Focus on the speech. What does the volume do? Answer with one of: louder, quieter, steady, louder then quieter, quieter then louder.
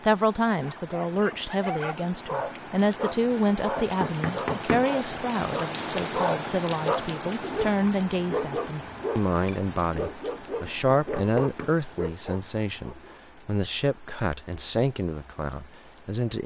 steady.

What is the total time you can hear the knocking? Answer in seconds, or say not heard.
2 s.